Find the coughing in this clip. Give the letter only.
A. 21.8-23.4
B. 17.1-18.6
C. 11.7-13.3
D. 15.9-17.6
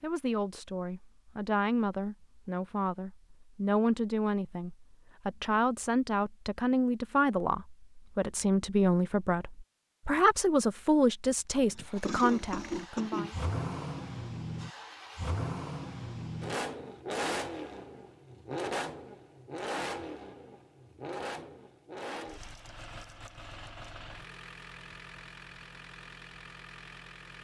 C.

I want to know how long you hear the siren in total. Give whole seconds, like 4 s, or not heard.
not heard.